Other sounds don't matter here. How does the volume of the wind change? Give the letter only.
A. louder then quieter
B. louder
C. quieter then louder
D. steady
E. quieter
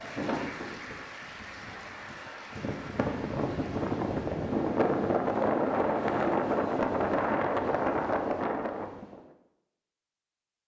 B.